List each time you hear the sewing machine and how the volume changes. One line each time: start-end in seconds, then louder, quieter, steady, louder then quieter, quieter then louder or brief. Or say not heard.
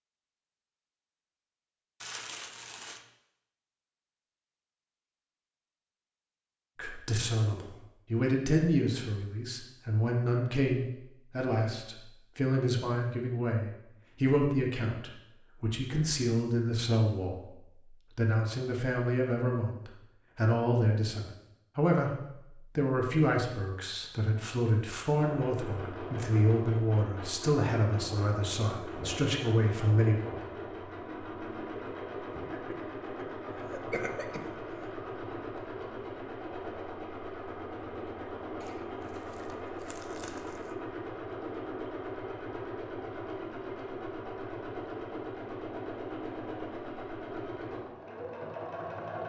25.1-49.2 steady.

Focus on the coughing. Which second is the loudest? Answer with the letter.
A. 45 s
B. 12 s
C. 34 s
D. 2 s
C.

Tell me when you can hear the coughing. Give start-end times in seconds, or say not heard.
32.4-34.7.